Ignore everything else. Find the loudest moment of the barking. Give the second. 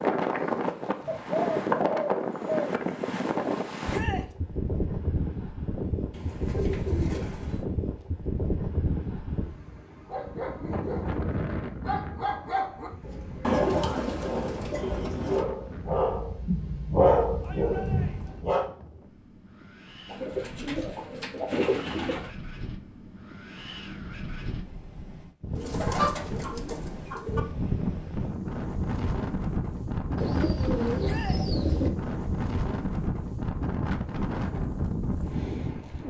17 s.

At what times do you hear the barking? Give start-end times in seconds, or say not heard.
10.1-18.6.